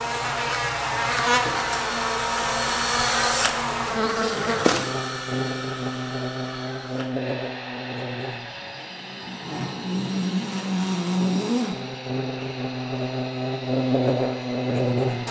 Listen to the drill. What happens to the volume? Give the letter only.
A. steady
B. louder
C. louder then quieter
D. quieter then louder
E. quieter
E.